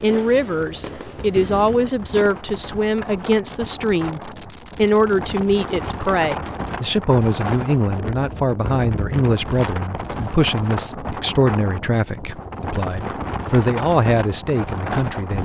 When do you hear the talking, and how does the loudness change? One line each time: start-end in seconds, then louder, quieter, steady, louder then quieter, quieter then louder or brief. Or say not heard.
0.0-15.3 steady.